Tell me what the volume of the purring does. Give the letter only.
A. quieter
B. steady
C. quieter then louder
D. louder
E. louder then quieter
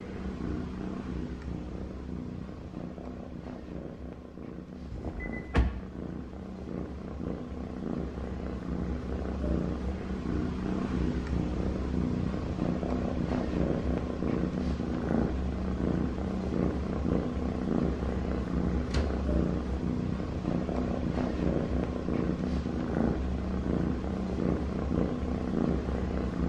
D.